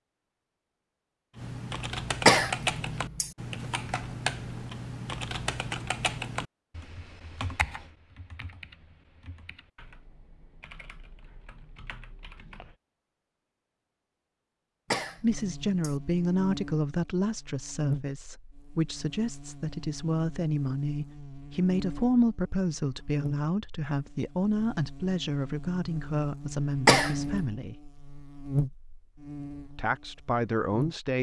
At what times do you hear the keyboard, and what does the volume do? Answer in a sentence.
You can hear the keyboard from 1.4 to 12.8 s, getting quieter.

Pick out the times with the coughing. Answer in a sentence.
The coughing can be heard from 2.2 to 3.3 s, from 14.9 to 15.9 s and from 26.9 to 27.4 s.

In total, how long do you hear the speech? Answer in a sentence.
The speech can be heard for 14 seconds in total.